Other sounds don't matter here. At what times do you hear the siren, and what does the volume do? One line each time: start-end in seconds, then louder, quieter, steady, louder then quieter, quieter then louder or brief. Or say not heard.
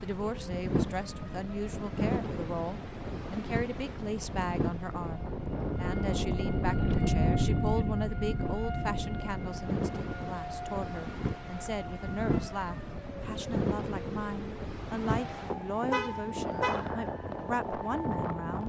0.0-18.6 louder then quieter.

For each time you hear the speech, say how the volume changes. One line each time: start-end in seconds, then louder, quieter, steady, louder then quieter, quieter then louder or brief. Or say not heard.
0.0-18.6 steady.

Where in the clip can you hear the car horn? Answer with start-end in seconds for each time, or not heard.
15.9-16.9.